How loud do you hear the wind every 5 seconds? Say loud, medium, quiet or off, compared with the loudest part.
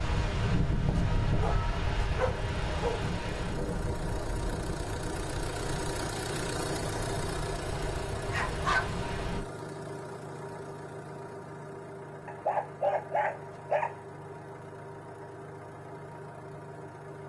loud, medium, off, off.